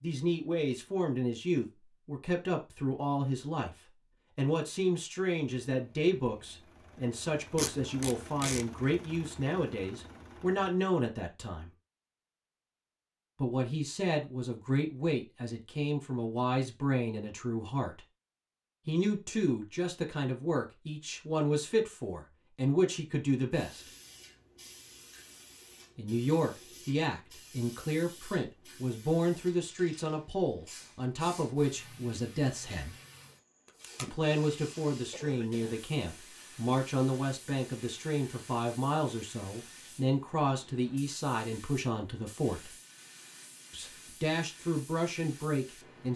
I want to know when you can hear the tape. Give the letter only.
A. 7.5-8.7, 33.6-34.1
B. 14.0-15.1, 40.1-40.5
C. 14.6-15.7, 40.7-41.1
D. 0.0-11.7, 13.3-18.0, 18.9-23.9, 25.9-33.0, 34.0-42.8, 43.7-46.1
A.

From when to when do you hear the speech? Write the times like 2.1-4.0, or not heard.
0.0-11.7, 13.3-18.0, 18.9-23.9, 25.9-33.0, 34.0-42.8, 43.7-46.1.